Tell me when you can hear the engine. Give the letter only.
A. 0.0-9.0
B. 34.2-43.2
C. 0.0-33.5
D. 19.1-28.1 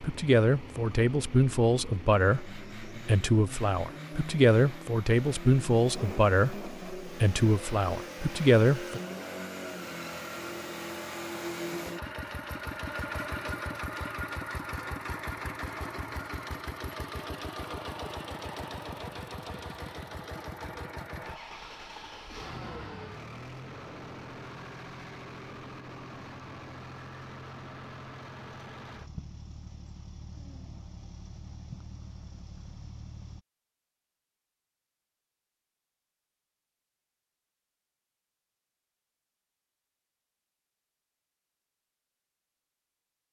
C.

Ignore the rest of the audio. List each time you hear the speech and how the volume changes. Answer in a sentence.
The speech can be heard from 0.0 to 9.0 s, at a steady volume.